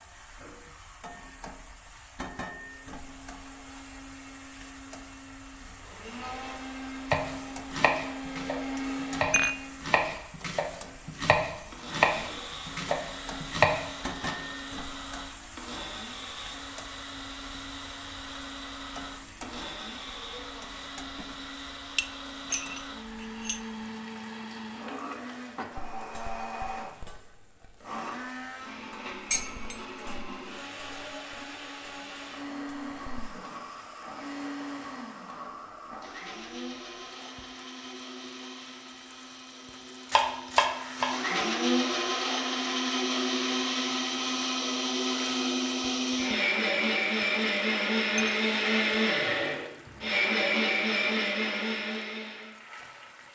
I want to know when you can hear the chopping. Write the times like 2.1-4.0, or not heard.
7.1-14.3, 40.1-41.2.